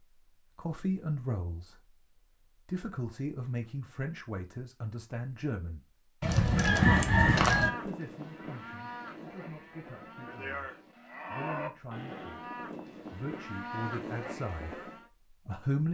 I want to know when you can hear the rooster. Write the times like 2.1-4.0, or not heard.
6.2-7.7.